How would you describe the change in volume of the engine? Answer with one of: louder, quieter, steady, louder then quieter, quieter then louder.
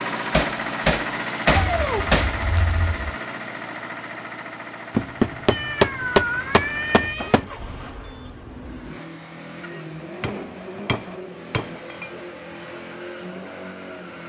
quieter.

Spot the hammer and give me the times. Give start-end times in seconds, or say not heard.
0.3-2.3, 5.0-7.5, 10.2-12.1.